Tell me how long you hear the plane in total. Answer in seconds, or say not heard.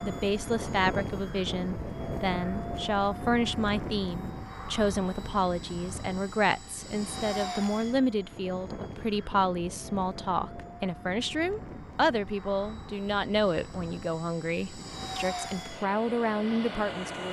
17 s.